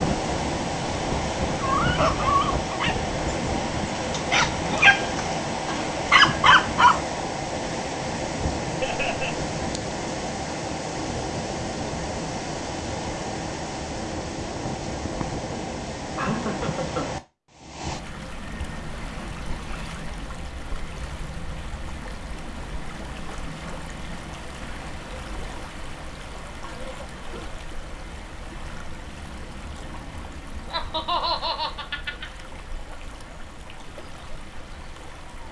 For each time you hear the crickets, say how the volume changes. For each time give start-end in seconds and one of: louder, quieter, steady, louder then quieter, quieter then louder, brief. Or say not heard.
not heard.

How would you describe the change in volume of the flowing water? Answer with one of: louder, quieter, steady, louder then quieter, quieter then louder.
quieter.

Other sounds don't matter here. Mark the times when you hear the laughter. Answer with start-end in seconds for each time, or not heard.
8.8-9.5, 16.1-17.1, 30.7-32.2.